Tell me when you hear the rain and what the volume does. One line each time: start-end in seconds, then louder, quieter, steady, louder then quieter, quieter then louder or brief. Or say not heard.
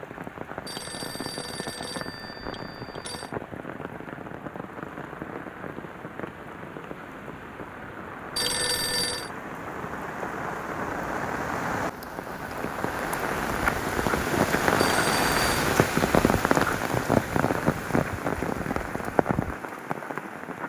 0.0-20.6 louder.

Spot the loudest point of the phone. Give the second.
9 s.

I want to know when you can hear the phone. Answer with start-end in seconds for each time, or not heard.
0.7-3.3, 8.3-9.3, 14.9-15.7.